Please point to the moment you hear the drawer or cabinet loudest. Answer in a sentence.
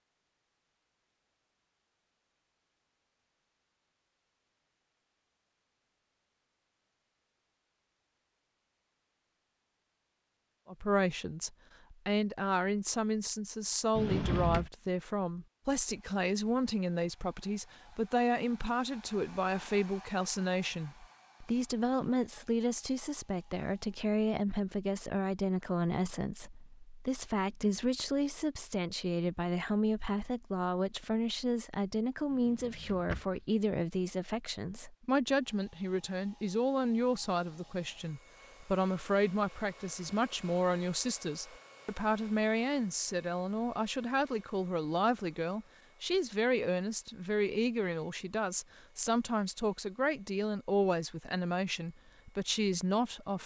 The volume of the drawer or cabinet peaks at 14 seconds.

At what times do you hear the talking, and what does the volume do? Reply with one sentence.
You can hear the talking from 10.7 to 53.4 s, at a steady volume.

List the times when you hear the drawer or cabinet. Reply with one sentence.
The drawer or cabinet can be heard from 13.9 to 14.7 s and from 32.3 to 33.5 s.